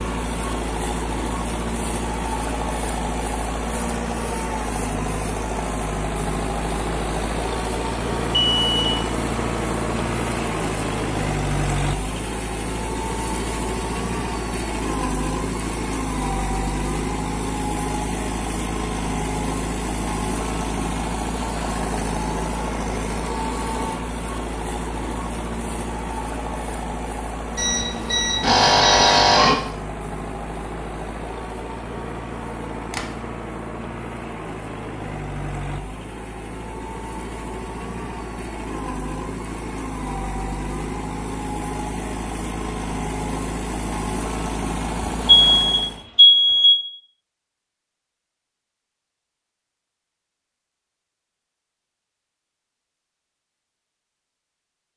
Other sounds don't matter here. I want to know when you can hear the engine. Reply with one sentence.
You can hear the engine from 0.0 to 46.0 s.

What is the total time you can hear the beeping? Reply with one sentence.
You can hear the beeping for 4 seconds altogether.